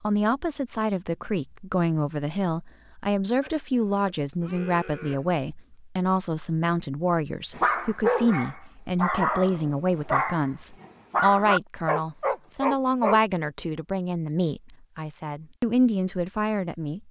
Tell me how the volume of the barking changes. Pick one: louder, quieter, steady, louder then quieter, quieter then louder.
steady.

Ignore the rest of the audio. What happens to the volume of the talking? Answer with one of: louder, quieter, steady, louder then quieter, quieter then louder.
steady.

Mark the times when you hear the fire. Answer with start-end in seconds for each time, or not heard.
not heard.